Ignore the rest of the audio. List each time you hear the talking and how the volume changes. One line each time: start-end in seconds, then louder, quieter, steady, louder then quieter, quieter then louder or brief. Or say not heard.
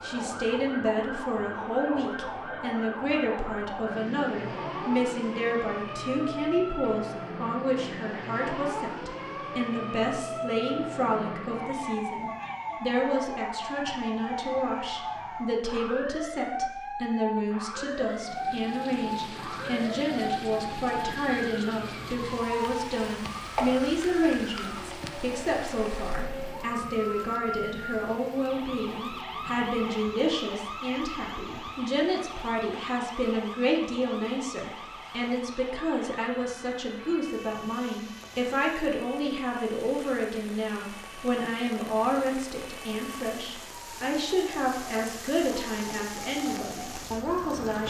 0.0-47.8 steady.